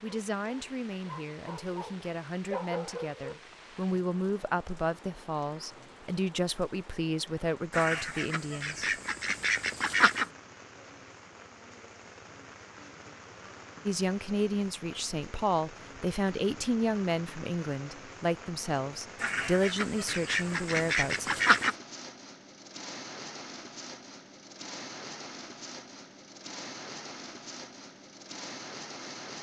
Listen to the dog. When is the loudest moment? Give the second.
3 s.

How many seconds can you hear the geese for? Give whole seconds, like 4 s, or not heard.
5 s.